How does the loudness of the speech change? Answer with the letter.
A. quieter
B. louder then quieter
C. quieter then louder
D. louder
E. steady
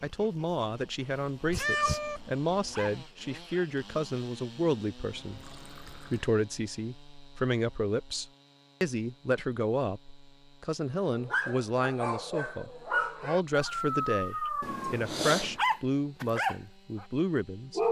E.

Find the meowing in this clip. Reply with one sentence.
You can hear the meowing from 1.4 to 2.9 s and from 14.6 to 15.6 s.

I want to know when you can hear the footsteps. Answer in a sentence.
You can't hear the footsteps here.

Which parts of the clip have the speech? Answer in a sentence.
You can hear the speech from 0.0 to 17.8 s.